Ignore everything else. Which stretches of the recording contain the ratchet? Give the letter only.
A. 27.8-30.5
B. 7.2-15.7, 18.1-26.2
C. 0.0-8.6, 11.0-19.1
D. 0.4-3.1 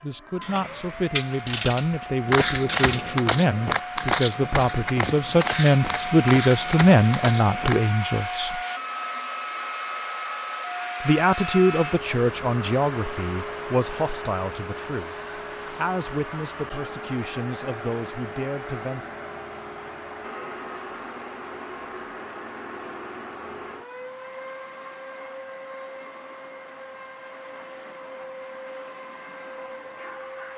D.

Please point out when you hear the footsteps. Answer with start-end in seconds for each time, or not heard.
2.2-7.8.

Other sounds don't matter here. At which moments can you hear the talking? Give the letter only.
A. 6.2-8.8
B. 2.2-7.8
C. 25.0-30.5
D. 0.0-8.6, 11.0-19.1
D.